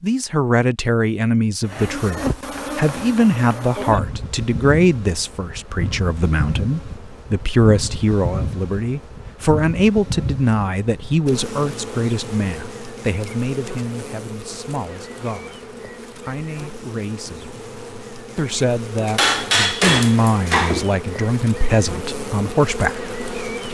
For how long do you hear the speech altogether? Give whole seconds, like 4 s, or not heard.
23 s.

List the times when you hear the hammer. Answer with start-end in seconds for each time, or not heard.
2.2-4.0, 19.1-20.9.